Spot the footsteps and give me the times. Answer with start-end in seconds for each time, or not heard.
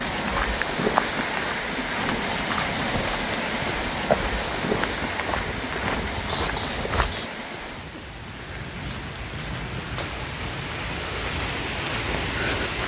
0.1-7.3.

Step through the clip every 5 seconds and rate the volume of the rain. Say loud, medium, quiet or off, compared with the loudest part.
loud, medium, loud.